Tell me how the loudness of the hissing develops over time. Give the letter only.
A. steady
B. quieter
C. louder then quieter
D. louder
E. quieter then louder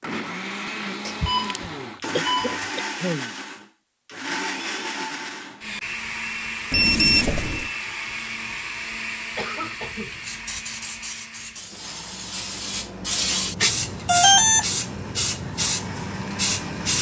D.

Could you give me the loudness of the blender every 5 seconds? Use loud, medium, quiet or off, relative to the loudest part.
loud, loud, medium, medium.